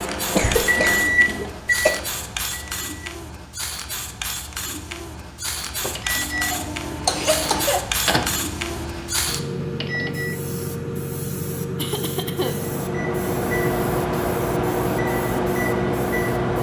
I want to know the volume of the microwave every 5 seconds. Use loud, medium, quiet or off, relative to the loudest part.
loud, medium, loud, loud.